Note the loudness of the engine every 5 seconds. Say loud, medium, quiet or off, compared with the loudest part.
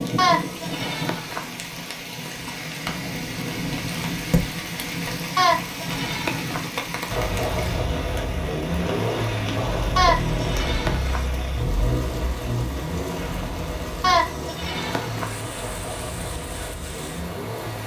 off, loud, loud, medium.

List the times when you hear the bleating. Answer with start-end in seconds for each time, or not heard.
0.1-1.5, 5.3-6.7, 9.9-11.3, 14.0-15.3.